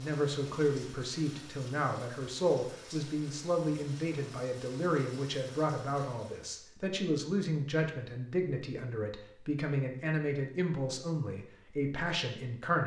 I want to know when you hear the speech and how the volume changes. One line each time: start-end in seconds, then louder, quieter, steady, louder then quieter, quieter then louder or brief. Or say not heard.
0.0-12.8 steady.